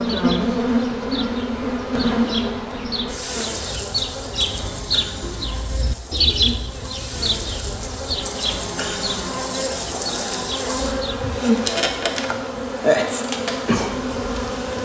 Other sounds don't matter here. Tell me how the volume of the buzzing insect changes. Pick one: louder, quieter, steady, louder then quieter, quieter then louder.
quieter then louder.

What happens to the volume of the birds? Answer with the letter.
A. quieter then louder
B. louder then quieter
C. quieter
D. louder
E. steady
B.